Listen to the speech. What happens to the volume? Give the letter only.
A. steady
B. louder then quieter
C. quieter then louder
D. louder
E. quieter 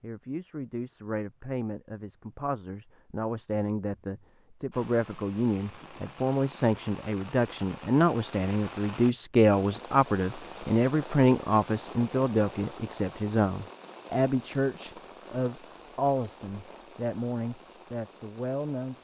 B.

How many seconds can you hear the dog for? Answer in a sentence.
You can't hear the dog here.